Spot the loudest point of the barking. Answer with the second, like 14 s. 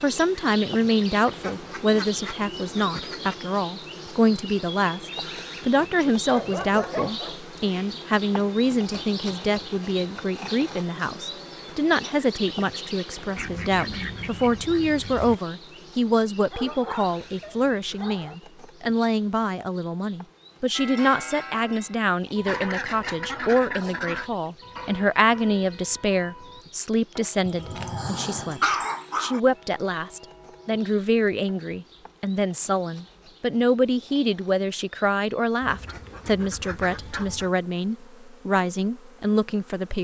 29 s.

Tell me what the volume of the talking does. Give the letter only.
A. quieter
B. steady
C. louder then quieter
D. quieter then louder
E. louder
B.